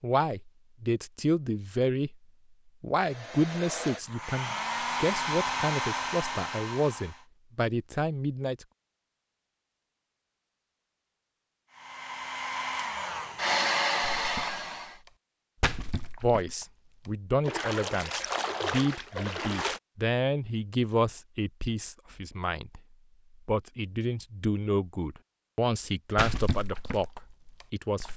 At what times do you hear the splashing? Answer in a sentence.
You can hear the splashing from 14.2 to 19.8 s and from 26.1 to 28.1 s.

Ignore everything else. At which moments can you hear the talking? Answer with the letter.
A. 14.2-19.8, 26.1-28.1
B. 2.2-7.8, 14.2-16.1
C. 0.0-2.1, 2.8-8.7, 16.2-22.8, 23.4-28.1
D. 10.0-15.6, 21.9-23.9
C.